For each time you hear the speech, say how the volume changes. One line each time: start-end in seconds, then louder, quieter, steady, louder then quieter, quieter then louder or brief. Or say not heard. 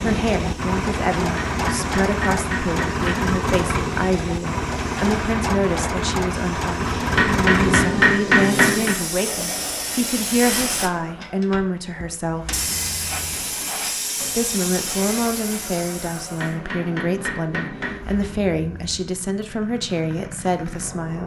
0.0-12.6 steady
14.3-21.2 steady.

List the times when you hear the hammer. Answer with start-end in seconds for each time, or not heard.
1.4-3.3, 7.2-8.9, 16.4-18.1.